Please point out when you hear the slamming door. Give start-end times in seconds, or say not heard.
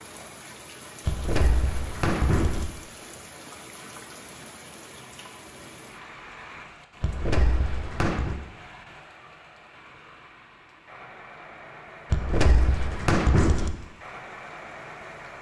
1.1-2.6, 7.0-8.3, 12.1-13.7.